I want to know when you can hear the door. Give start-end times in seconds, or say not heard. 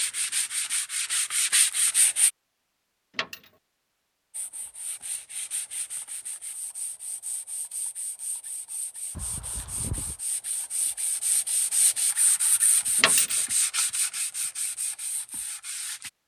9.2-10.2.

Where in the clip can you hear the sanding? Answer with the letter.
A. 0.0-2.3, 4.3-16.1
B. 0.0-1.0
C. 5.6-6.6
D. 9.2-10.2
A.